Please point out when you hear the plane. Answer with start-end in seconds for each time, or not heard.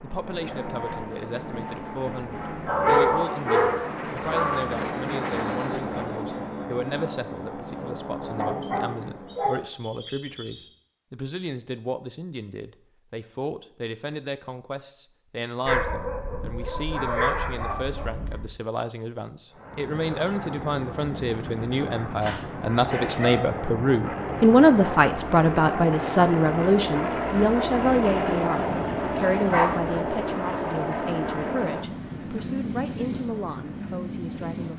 0.0-9.5, 19.5-34.7.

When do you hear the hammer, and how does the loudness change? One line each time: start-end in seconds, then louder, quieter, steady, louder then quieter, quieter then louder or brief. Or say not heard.
not heard.